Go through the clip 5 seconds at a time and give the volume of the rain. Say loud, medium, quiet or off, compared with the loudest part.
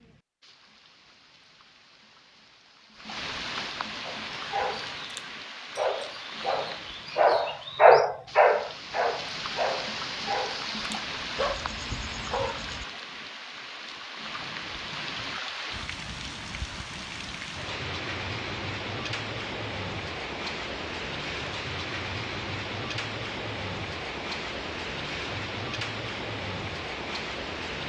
medium, medium, loud, loud, loud, loud.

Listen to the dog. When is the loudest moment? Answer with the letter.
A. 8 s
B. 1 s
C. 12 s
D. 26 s
A.